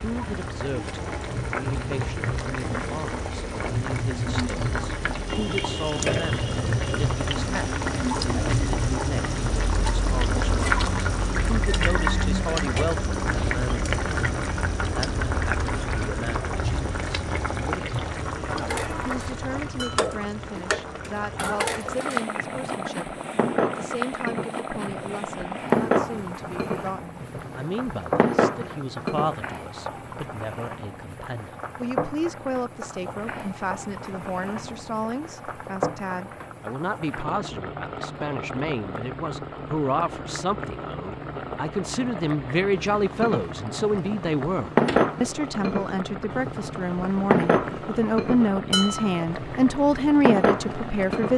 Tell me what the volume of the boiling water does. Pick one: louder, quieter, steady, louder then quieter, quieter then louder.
quieter.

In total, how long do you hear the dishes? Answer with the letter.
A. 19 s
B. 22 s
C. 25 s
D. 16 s
A.